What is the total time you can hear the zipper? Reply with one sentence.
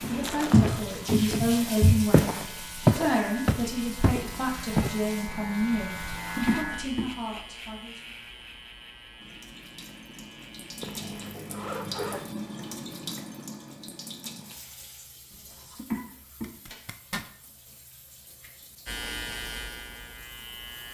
The zipper can be heard for 3 seconds in total.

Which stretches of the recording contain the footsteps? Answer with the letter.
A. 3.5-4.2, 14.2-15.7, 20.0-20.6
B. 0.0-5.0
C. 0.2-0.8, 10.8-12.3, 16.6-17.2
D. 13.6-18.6
B.